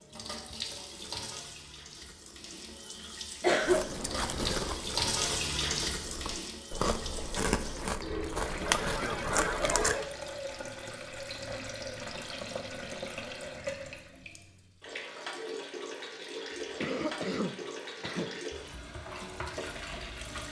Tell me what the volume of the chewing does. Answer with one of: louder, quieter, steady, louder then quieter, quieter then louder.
quieter then louder.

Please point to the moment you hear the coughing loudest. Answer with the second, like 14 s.
4 s.